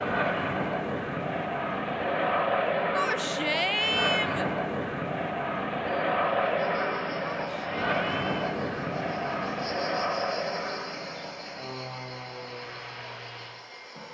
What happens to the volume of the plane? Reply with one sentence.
The loudness of the plane goes down.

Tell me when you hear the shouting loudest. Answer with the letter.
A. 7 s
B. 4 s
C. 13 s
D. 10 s
B.